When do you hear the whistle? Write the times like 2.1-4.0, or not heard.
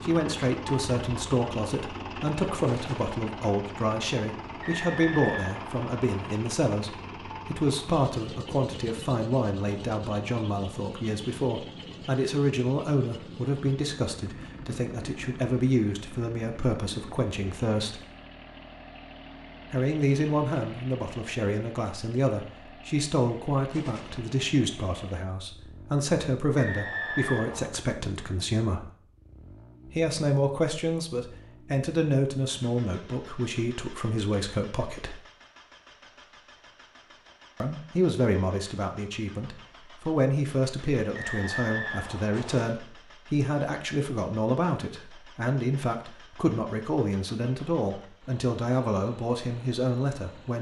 4.6-6.3, 26.6-27.7, 41.1-42.6.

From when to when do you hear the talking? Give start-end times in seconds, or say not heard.
0.0-18.1, 19.7-28.9, 29.9-35.2, 37.6-50.5.